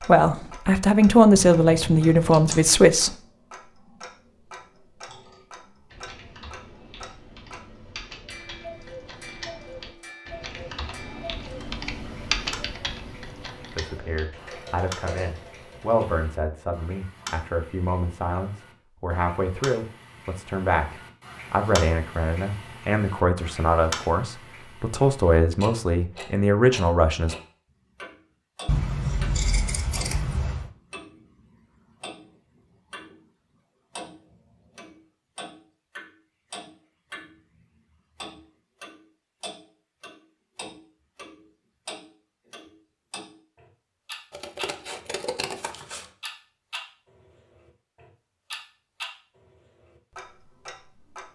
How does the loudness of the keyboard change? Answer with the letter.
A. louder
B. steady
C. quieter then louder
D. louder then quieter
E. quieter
D.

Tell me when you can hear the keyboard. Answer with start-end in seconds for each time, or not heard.
5.0-16.1.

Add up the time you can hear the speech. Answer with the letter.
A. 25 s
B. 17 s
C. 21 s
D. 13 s
B.